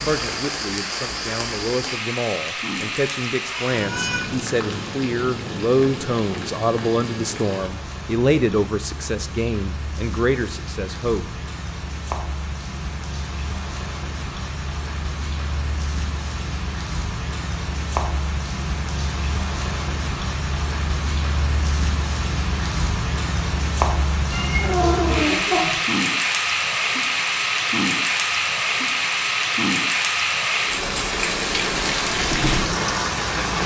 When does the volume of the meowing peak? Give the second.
25 s.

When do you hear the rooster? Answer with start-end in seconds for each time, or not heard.
not heard.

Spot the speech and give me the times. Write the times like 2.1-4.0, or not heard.
0.0-11.4.